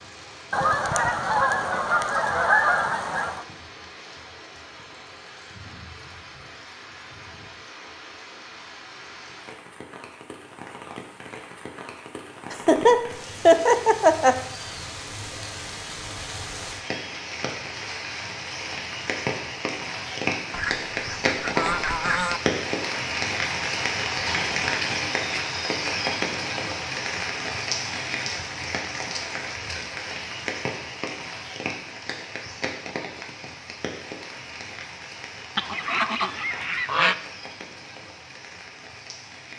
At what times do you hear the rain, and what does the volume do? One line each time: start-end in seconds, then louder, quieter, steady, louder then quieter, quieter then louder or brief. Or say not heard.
0.0-39.5 louder then quieter.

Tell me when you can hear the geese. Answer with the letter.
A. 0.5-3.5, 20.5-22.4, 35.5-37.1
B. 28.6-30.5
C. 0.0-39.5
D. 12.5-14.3
A.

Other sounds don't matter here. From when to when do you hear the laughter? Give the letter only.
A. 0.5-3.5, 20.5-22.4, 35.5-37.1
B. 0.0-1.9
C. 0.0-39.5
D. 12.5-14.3
D.